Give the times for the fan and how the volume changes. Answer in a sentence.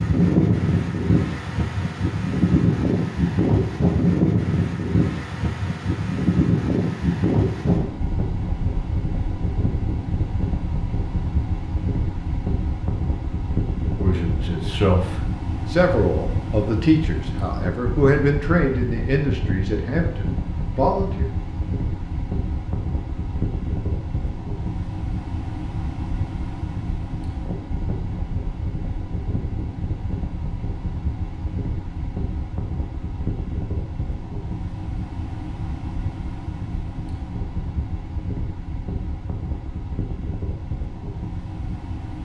The fan can be heard from 0.0 to 42.2 s, getting quieter.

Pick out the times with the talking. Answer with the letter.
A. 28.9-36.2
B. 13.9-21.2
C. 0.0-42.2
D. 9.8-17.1
B.